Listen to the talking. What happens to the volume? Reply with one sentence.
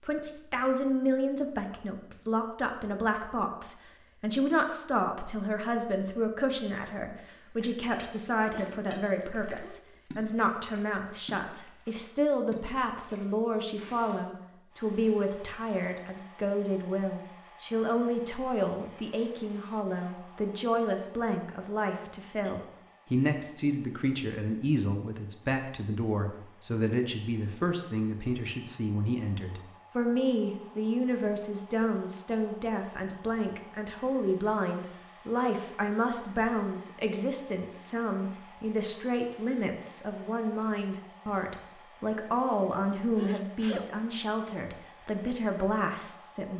The loudness of the talking stays about the same.